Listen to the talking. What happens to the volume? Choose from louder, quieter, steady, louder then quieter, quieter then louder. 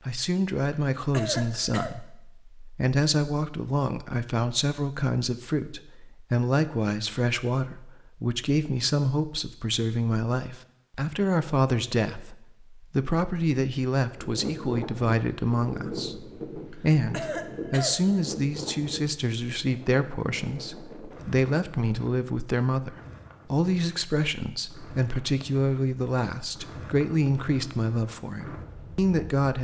steady.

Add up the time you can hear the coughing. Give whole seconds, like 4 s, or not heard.
3 s.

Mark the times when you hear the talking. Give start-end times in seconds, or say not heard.
0.1-29.6.